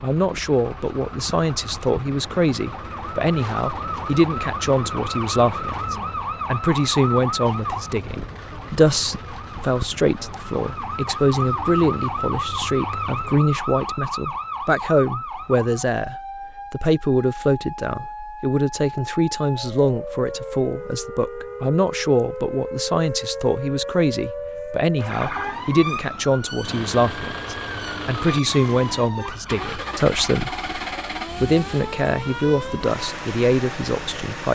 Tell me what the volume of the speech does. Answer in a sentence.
The loudness of the speech stays about the same.